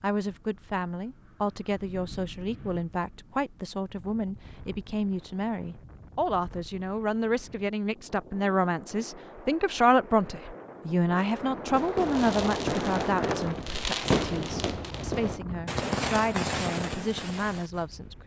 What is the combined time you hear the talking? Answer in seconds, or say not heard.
18 s.